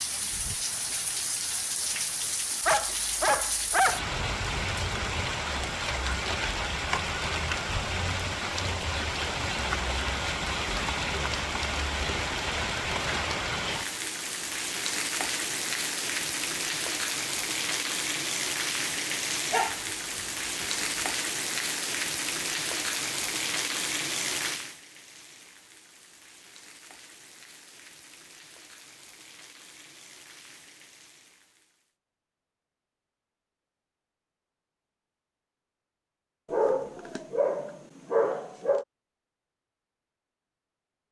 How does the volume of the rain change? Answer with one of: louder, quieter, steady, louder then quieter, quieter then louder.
quieter.